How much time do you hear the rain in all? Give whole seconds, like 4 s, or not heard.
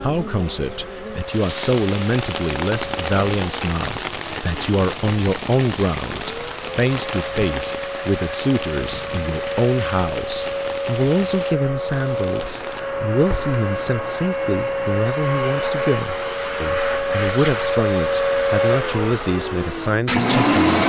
13 s.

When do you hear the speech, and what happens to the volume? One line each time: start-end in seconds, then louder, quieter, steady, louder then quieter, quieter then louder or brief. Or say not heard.
0.0-20.6 steady.